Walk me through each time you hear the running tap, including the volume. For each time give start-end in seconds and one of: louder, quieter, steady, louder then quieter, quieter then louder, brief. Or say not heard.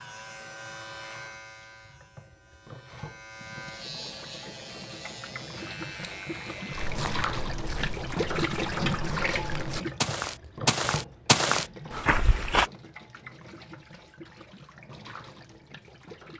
0.0-16.3 louder then quieter.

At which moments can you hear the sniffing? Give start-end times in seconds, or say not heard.
not heard.